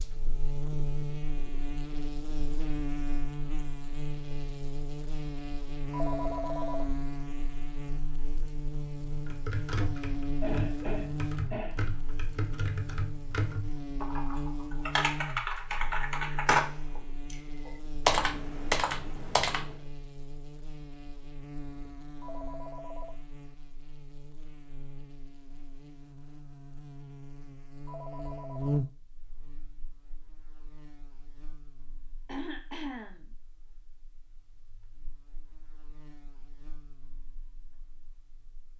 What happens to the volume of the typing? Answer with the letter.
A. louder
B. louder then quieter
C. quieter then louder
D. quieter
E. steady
A.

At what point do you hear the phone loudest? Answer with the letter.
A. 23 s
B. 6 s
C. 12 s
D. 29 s
B.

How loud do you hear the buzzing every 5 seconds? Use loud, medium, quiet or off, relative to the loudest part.
loud, loud, loud, medium, medium, loud, quiet, quiet.